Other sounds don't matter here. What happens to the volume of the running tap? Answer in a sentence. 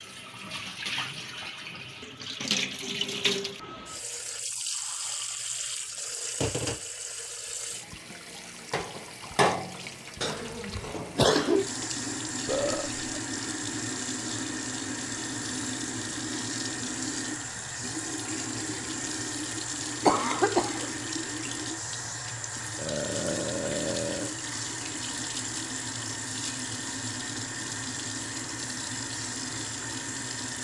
The loudness of the running tap stays about the same.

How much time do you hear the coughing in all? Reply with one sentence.
The coughing can be heard for 2 seconds in total.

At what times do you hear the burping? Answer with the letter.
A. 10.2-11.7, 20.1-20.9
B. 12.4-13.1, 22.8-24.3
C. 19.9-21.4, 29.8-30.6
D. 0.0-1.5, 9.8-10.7
B.